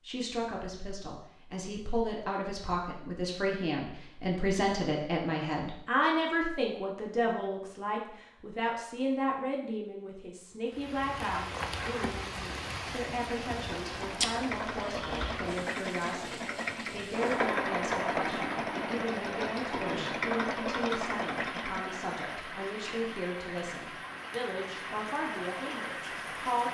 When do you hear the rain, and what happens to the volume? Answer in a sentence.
The rain can be heard from 10.7 to 26.6 s, at a steady volume.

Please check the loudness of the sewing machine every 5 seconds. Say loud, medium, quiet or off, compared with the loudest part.
off, off, medium, loud, loud, off.